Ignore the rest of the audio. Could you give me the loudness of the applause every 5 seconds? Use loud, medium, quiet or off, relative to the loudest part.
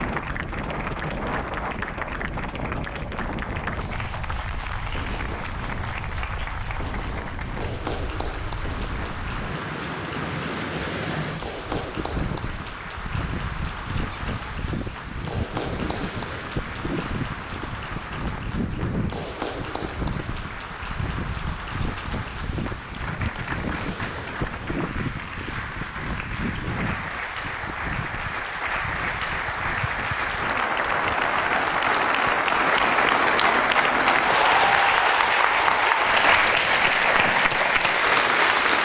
quiet, quiet, quiet, quiet, quiet, medium, loud, loud.